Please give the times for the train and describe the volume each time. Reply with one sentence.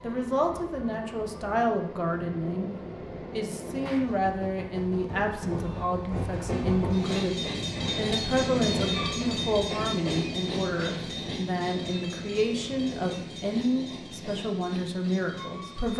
The train can be heard from 0.0 to 15.9 s, getting louder then quieter.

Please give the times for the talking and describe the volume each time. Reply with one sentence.
You can hear the talking from 0.0 to 15.9 s, at a steady volume.